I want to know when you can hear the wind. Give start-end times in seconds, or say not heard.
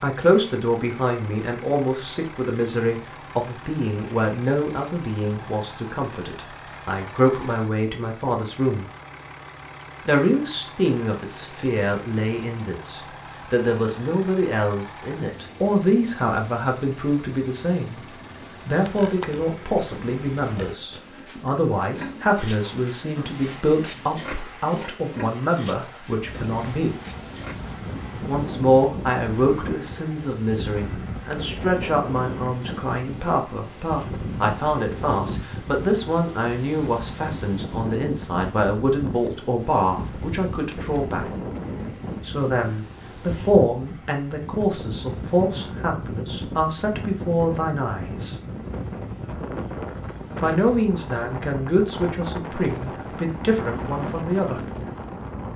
26.2-55.5.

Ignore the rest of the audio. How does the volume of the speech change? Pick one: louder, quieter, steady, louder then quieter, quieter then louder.
steady.